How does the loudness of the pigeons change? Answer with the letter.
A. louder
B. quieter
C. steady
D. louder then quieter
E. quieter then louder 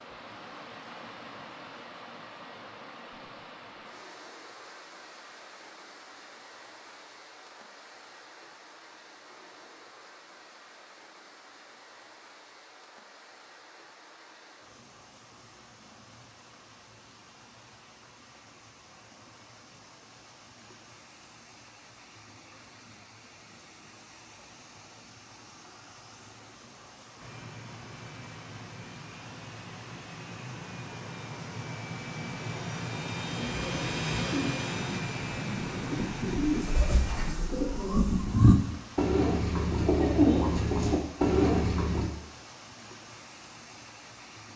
A.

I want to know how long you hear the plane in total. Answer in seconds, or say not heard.
10 s.